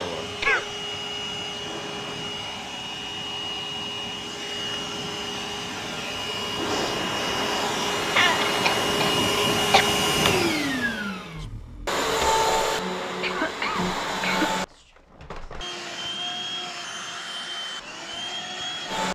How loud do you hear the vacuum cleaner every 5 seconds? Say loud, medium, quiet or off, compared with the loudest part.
medium, loud, loud, medium.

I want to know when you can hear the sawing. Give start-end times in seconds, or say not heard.
not heard.